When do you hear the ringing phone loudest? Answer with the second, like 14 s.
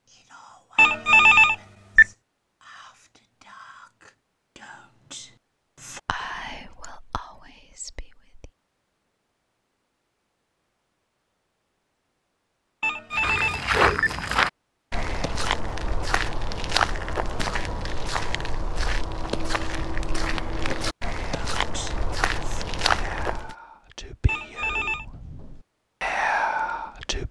1 s.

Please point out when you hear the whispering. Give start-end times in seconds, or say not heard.
0.1-8.5, 21.6-27.2.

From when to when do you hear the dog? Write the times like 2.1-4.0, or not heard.
not heard.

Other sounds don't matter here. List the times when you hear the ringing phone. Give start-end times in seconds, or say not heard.
0.8-2.0, 12.8-14.1, 24.2-25.1.